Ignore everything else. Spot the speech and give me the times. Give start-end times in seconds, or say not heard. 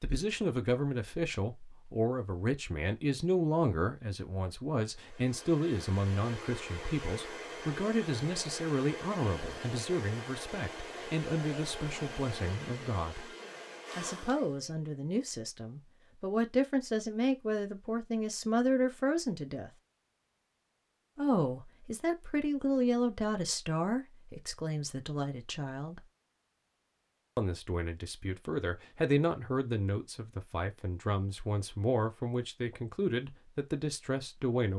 0.0-13.3, 13.9-19.7, 21.1-26.0, 27.4-34.7.